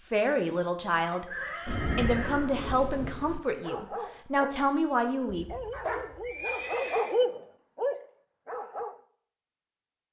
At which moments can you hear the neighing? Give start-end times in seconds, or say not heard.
1.2-2.6, 5.3-7.2.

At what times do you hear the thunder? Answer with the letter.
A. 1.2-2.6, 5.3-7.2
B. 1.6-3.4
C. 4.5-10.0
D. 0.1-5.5
B.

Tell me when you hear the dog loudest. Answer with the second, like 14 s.
7 s.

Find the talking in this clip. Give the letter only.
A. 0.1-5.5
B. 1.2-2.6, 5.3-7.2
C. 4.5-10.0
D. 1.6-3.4
A.